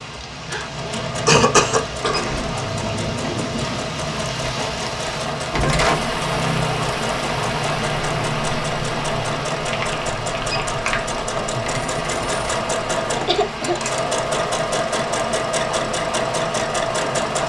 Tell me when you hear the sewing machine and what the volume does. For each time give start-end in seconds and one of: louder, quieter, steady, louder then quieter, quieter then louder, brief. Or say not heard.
0.0-17.4 louder.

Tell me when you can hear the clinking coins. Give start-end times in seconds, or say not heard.
11.7-12.7.